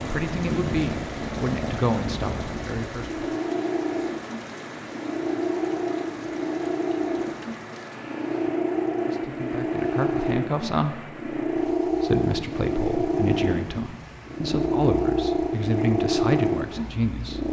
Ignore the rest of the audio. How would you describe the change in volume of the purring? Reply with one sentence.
The volume of the purring goes up.